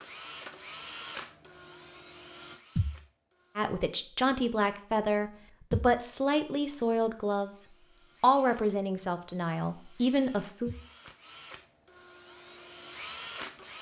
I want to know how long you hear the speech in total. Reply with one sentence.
You can hear the speech for 7 seconds altogether.